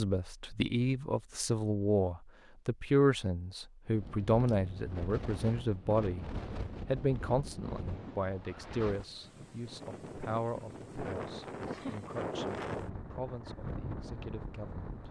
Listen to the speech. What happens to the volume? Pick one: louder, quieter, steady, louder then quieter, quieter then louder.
quieter.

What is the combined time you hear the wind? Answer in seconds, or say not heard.
11 s.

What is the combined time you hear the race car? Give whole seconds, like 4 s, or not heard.
not heard.